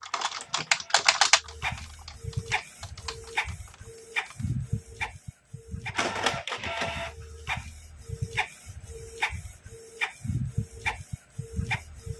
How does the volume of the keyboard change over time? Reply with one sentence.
The volume of the keyboard goes down.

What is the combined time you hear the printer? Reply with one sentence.
You can hear the printer for 12 seconds altogether.